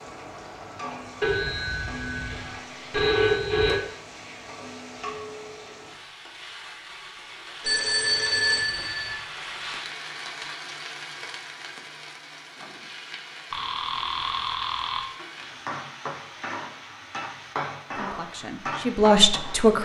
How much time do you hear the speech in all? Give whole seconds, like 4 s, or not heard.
2 s.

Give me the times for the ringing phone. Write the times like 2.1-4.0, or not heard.
1.2-3.8, 7.6-9.2, 13.5-15.1.